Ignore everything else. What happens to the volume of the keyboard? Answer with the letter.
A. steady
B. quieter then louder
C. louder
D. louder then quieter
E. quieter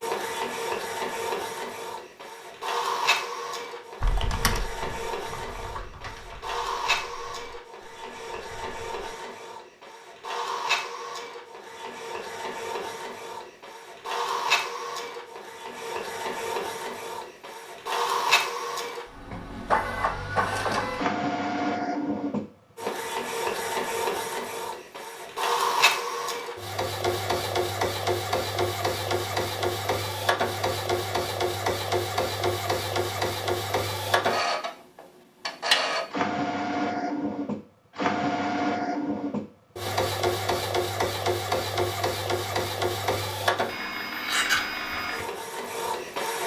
B.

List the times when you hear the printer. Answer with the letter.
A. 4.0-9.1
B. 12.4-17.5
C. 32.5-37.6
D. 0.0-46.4
D.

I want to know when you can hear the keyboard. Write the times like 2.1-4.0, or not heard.
4.0-9.1.